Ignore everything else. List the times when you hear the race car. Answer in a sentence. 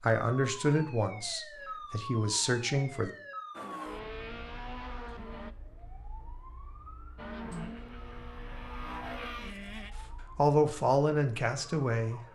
The race car can be heard from 3.5 to 5.5 s and from 7.2 to 9.9 s.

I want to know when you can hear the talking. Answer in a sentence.
The talking can be heard from 0.0 to 3.1 s and from 10.3 to 12.2 s.